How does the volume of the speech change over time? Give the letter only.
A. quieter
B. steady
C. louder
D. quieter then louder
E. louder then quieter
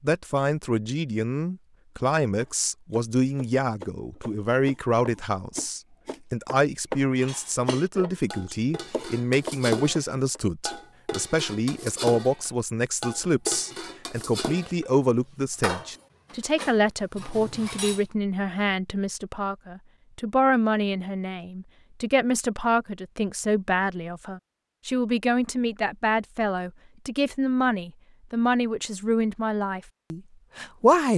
B.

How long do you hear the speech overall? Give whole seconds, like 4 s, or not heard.
31 s.